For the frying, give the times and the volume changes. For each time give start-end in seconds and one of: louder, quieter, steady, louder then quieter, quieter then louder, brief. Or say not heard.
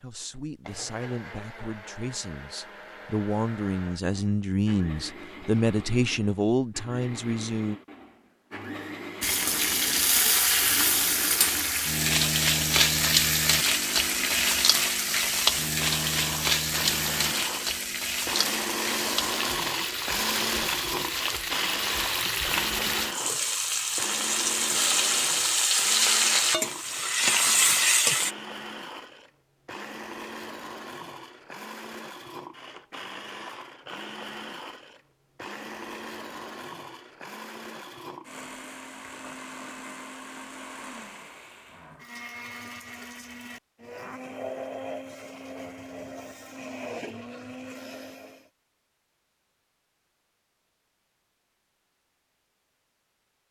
9.2-28.4 quieter then louder.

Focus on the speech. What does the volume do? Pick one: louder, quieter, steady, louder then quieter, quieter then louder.
louder.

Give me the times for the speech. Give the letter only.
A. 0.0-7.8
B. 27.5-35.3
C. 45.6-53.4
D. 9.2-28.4
A.